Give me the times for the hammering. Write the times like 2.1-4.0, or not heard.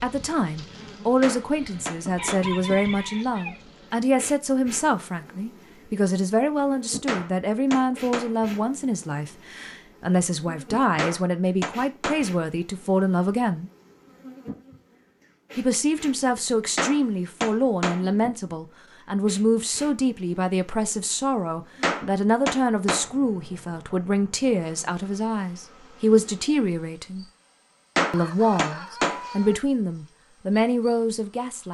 1.2-2.5, 7.0-8.3, 10.9-12.2, 16.8-18.1, 21.8-23.1, 27.9-29.2.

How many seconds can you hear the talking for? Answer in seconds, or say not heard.
29 s.